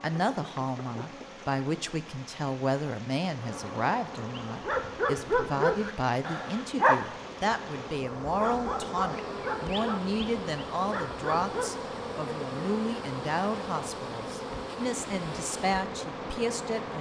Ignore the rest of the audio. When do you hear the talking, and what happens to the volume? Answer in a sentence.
The talking can be heard from 0.0 to 16.9 s, at a steady volume.